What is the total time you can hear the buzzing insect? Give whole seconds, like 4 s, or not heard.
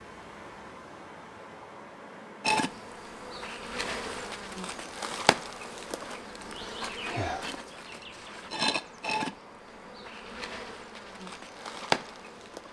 10 s.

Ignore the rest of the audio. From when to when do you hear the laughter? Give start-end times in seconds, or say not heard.
not heard.